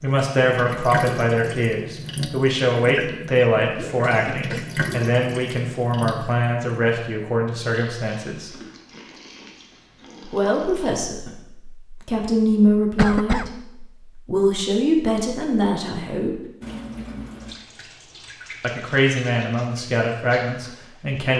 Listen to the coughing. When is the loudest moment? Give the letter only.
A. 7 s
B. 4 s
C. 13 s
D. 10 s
C.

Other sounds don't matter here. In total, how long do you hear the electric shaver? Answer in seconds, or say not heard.
not heard.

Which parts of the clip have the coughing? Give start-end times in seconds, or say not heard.
2.9-4.8, 12.9-13.6.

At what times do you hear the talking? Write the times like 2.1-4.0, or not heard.
0.0-8.5, 10.3-16.4, 18.6-21.3.